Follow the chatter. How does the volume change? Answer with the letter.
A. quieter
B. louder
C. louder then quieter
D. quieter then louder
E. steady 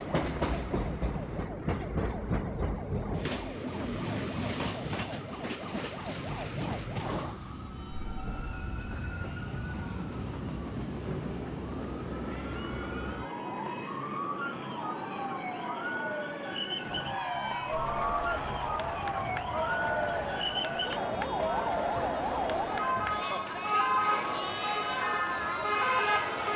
B.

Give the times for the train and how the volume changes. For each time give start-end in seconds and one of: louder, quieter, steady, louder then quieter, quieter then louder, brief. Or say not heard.
0.0-26.5 quieter.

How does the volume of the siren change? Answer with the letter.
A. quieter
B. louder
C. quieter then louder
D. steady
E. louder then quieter
B.